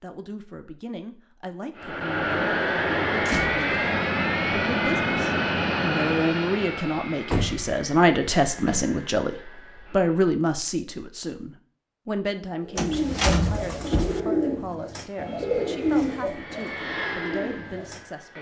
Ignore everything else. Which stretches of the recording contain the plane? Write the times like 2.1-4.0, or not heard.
1.8-10.2, 15.1-18.3.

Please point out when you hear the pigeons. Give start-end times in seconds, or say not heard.
12.6-18.0.